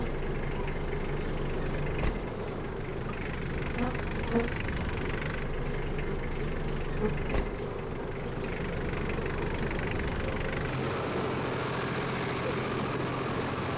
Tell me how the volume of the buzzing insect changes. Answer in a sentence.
The loudness of the buzzing insect stays about the same.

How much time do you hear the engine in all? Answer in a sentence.
The engine can be heard for 14 seconds in total.